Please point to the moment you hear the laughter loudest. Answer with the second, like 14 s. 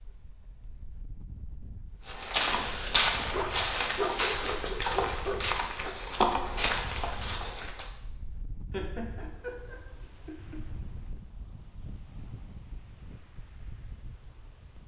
9 s.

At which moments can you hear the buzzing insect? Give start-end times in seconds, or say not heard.
not heard.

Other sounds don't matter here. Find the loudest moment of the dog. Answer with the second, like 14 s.
4 s.